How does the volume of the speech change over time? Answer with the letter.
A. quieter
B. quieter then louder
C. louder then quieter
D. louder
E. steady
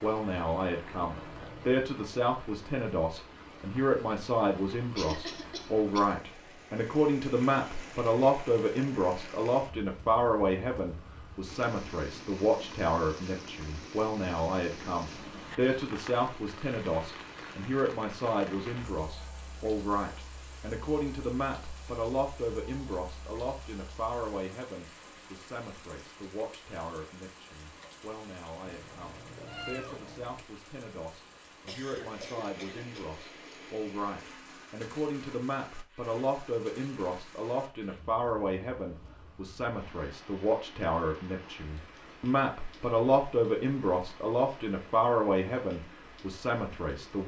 B.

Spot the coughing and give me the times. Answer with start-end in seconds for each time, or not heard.
5.0-6.1, 31.6-33.0.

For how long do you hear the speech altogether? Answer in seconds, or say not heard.
47 s.